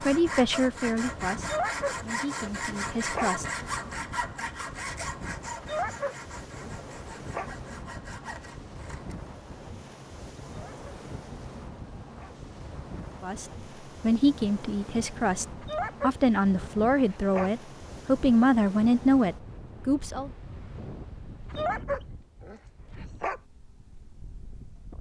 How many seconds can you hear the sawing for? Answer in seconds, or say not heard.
9 s.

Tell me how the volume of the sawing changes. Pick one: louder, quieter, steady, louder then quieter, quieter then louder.
quieter.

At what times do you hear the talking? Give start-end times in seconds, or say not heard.
0.0-3.5, 13.2-20.3.